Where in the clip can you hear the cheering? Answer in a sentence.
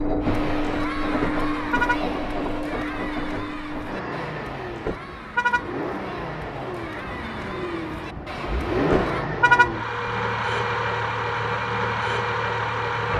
The cheering can be heard from 0.2 to 9.3 s.